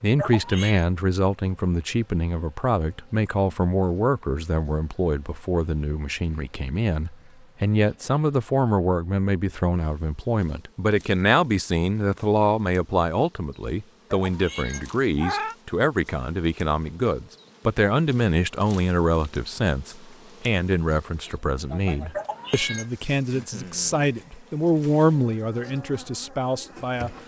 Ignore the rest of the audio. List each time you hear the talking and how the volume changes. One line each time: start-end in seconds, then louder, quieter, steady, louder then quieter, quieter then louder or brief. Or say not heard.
0.0-27.1 steady.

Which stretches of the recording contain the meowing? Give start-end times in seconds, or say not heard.
0.1-0.8, 14.1-15.6, 22.1-22.9.